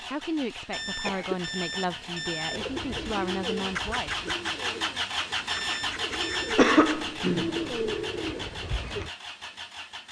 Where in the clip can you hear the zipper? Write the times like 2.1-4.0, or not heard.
not heard.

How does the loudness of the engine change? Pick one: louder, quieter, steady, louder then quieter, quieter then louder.
louder then quieter.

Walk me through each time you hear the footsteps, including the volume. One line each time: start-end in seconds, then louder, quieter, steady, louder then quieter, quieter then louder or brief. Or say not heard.
not heard.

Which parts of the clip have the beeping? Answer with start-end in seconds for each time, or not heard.
0.7-2.7, 5.5-6.5.